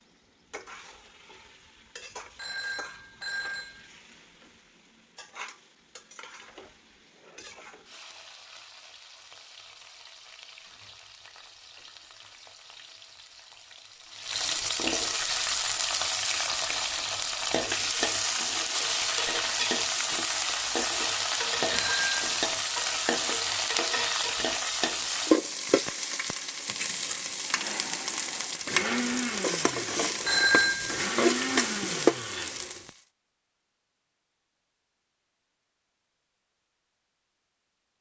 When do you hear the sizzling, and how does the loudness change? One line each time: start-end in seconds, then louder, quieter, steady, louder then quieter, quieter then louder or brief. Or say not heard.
0.0-33.0 louder.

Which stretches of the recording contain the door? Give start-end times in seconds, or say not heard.
not heard.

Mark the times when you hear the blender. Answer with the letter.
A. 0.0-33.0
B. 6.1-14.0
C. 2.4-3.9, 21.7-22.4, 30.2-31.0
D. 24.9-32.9
D.